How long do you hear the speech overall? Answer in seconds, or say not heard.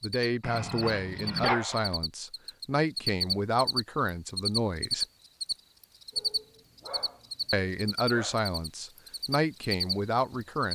8 s.